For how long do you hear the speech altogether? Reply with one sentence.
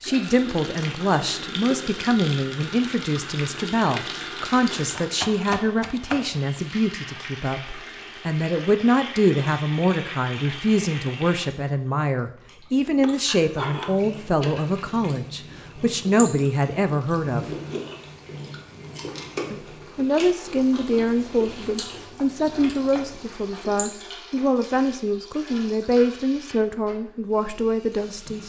You can hear the speech for 26 seconds altogether.